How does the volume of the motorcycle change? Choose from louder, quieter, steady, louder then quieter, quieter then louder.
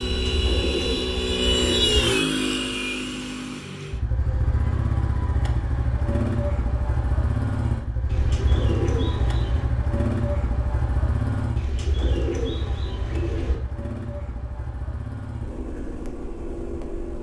quieter.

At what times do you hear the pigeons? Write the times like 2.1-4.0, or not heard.
0.0-2.0, 8.1-9.7, 11.6-13.6.